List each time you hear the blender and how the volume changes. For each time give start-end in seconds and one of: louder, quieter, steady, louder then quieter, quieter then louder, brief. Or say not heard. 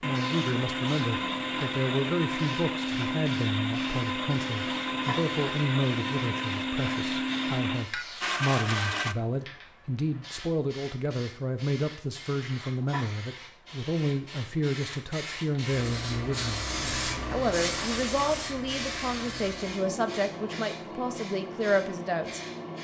0.0-9.2 steady.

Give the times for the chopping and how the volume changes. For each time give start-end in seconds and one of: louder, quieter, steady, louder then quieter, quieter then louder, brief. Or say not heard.
not heard.